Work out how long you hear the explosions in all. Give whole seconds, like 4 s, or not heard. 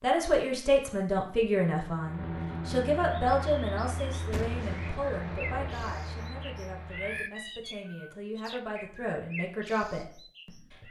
2 s.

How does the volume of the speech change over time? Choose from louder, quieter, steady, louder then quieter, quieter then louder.
quieter then louder.